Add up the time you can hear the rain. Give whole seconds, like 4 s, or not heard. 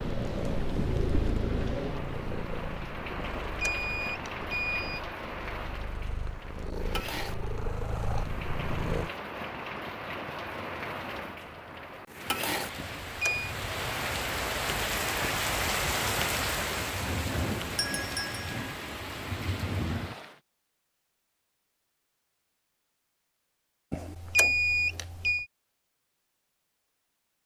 20 s.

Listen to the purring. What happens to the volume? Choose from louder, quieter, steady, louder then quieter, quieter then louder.
quieter then louder.